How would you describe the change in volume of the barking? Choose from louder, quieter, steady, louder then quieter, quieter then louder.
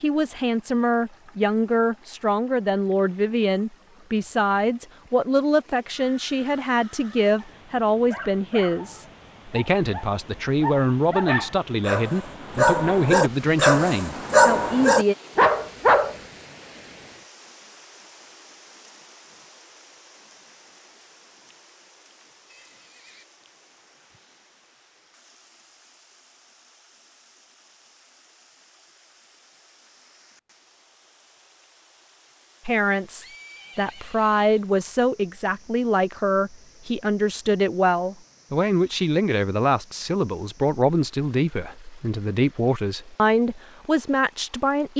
louder.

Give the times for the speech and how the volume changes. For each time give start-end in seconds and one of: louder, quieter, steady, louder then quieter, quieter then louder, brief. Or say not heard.
0.0-15.2 steady
32.6-44.9 steady.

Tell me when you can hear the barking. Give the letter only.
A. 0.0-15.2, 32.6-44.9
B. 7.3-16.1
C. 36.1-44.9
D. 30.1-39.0
B.